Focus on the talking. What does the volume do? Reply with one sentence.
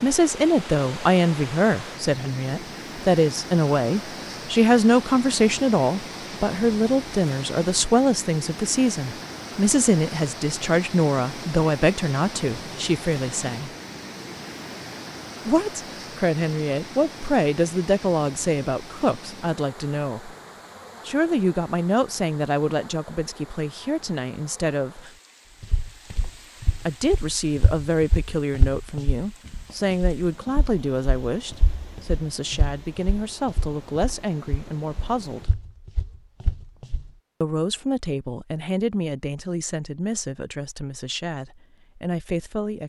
The loudness of the talking goes down.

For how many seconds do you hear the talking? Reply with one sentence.
The talking can be heard for 37 seconds in total.